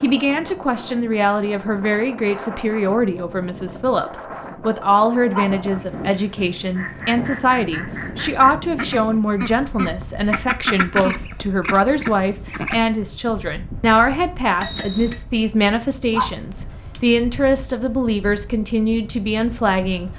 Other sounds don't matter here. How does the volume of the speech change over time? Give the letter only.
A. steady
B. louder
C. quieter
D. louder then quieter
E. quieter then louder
A.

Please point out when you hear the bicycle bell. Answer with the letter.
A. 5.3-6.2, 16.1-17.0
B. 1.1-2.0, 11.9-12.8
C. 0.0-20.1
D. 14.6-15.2
D.